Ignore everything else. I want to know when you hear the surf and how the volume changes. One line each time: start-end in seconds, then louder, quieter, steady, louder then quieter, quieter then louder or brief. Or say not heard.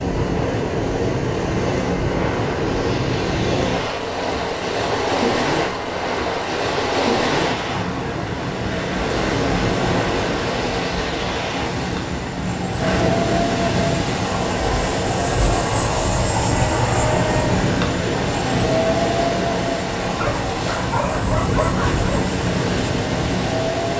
0.0-23.9 steady.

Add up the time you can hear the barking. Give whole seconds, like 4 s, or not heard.
2 s.